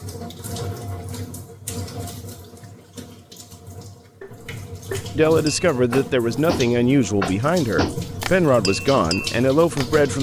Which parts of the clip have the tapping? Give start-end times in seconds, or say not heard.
4.2-9.8.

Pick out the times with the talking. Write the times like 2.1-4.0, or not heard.
5.2-10.1.